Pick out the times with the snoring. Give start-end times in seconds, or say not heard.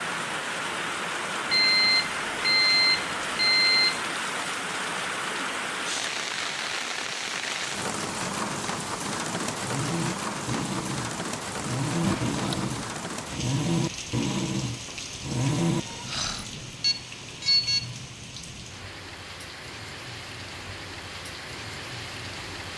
9.6-16.4.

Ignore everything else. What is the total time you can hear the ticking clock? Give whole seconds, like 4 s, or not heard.
not heard.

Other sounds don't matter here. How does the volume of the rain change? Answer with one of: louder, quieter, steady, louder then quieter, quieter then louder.
quieter.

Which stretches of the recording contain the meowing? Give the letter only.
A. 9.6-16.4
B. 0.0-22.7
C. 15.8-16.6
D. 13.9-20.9
C.